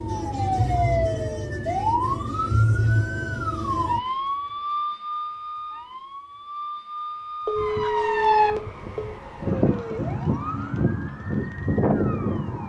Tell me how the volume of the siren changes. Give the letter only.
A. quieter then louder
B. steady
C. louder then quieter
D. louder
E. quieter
A.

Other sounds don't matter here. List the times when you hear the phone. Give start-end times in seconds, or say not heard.
7.5-9.1.